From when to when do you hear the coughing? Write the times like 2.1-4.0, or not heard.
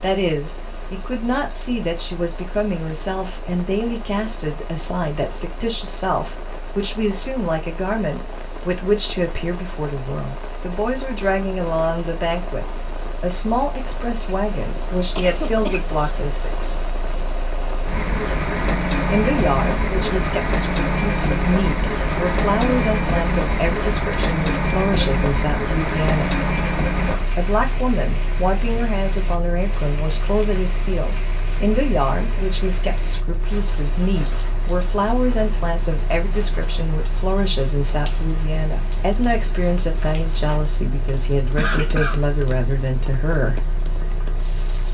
15.2-15.9, 41.1-42.2.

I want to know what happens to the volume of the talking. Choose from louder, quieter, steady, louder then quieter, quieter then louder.
steady.